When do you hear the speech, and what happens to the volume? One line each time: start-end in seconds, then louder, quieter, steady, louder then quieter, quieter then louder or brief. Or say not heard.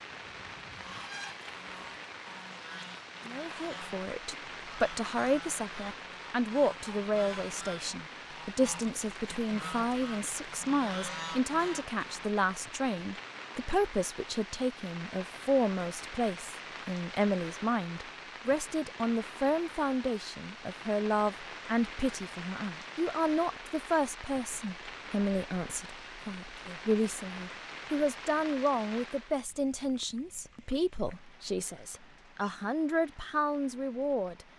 3.2-34.5 steady.